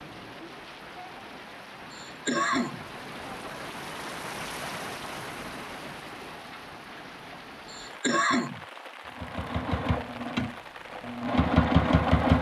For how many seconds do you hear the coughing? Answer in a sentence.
You can hear the coughing for 2 seconds altogether.